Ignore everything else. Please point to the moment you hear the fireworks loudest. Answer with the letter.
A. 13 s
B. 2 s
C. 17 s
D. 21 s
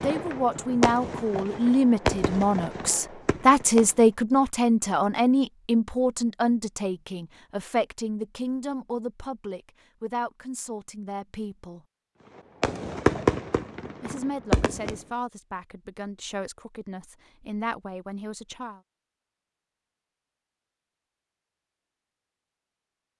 A.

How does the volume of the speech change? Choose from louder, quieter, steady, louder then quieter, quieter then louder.
quieter.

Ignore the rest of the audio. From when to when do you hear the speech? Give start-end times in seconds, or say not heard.
0.0-11.8, 14.0-18.8.